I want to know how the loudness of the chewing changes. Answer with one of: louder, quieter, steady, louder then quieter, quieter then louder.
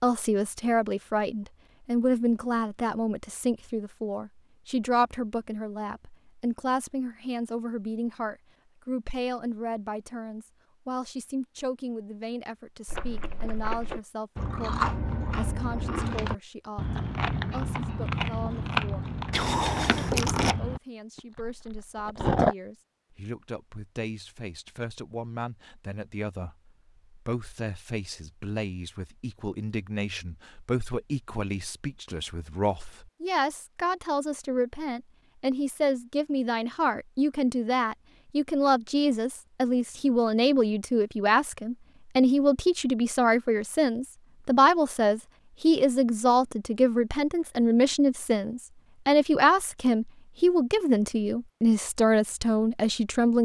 quieter.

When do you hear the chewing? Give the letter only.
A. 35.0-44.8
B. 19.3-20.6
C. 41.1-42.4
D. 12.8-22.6
D.